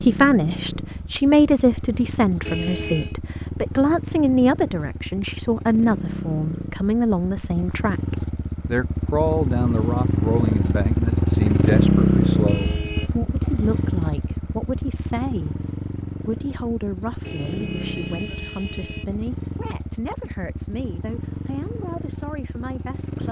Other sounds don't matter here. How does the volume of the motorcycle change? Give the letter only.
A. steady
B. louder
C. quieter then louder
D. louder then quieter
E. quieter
D.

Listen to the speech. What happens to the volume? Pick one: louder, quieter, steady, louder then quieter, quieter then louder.
quieter.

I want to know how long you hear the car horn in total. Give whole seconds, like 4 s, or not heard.
3 s.